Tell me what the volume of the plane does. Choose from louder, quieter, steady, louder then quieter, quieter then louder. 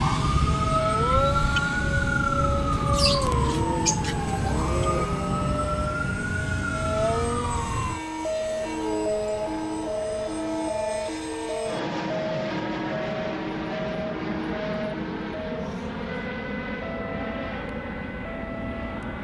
steady.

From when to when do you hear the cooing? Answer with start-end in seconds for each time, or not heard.
2.7-5.1.